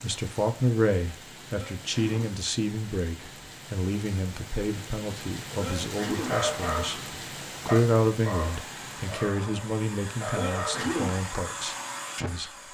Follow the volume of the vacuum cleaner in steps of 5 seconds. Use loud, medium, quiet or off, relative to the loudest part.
off, medium, loud.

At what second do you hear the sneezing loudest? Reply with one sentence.
The volume of the sneezing peaks at 11 seconds.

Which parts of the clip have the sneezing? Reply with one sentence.
The sneezing can be heard from 1.5 to 2.4 s, from 5.5 to 6.4 s and from 10.3 to 11.2 s.